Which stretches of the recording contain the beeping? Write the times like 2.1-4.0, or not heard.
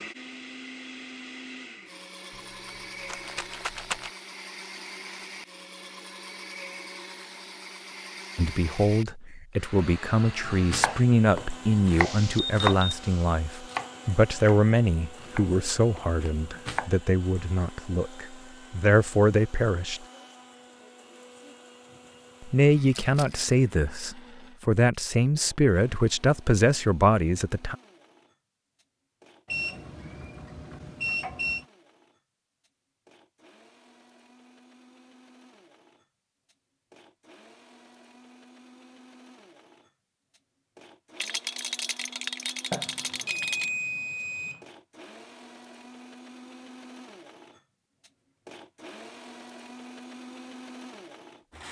11.9-13.2, 29.4-31.6, 42.7-44.6.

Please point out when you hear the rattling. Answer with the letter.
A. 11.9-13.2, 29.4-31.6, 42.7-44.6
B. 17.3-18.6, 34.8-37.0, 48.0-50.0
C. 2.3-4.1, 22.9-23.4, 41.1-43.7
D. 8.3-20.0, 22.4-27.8
C.